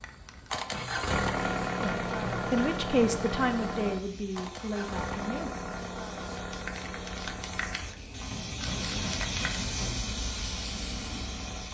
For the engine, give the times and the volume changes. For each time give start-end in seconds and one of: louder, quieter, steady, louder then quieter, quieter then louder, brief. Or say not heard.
0.0-11.6 quieter.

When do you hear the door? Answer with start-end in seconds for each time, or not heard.
not heard.